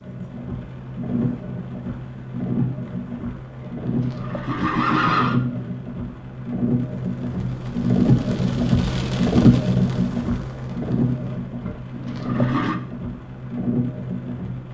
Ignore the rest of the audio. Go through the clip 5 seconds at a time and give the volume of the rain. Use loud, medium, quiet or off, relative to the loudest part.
medium, loud, medium.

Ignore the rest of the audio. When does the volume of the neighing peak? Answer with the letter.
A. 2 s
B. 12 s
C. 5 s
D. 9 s
C.